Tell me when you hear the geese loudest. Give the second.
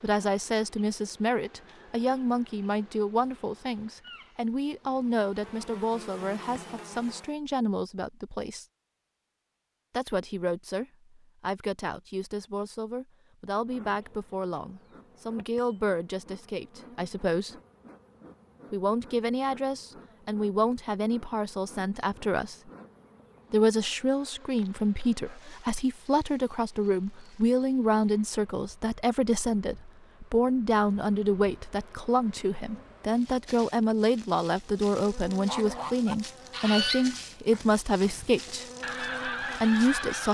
37 s.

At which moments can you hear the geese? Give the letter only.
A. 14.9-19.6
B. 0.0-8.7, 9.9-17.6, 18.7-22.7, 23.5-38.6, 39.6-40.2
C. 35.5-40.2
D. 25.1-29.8
C.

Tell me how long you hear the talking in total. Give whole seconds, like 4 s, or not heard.
36 s.